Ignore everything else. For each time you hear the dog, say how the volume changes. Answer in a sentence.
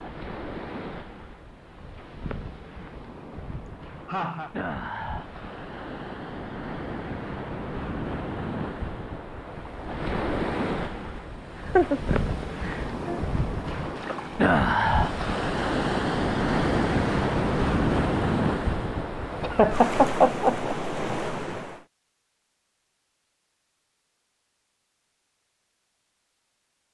The dog can't be heard in this clip.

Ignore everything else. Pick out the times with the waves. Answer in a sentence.
You can hear the waves from 0.0 to 21.9 s.